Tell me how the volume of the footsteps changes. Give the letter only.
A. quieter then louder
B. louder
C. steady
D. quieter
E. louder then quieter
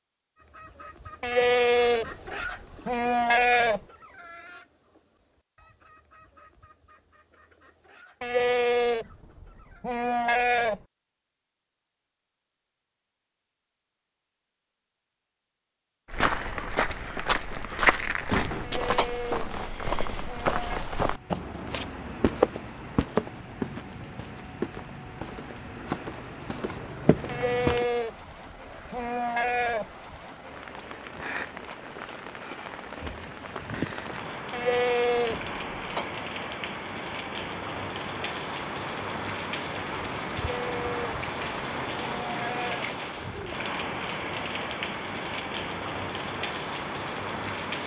D.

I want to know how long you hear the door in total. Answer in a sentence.
You can hear the door for 2 seconds altogether.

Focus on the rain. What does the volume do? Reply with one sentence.
The volume of the rain goes up.